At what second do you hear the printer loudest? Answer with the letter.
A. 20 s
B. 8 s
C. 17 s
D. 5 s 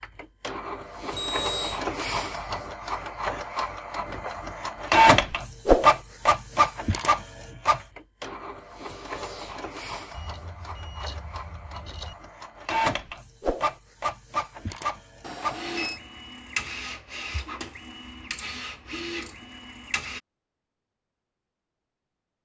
D.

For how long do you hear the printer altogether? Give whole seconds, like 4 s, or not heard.
20 s.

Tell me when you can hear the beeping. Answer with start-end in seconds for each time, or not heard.
1.1-1.8, 10.1-12.2, 15.2-16.0.